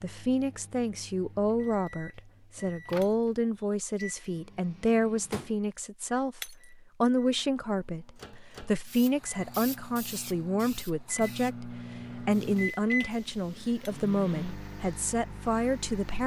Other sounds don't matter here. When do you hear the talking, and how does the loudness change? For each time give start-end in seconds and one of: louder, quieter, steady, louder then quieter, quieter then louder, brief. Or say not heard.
0.0-16.2 steady.